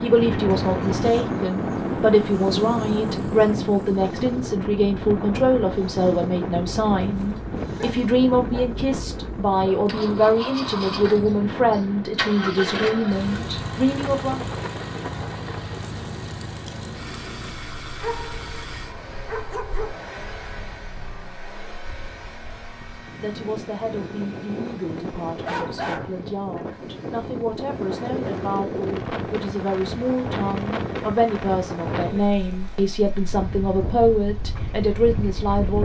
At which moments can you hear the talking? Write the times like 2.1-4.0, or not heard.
0.0-14.4, 23.2-35.8.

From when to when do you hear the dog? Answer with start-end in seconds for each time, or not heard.
7.0-9.8, 18.0-20.0, 25.4-26.8.